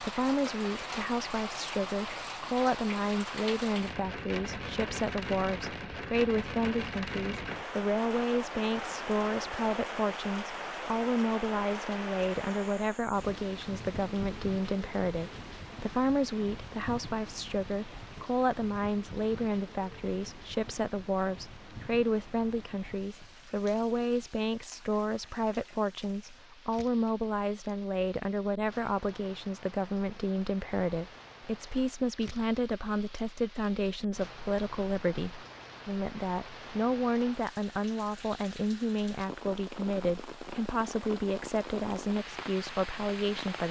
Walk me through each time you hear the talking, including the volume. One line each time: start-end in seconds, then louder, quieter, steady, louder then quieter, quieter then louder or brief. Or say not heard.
0.0-43.6 steady.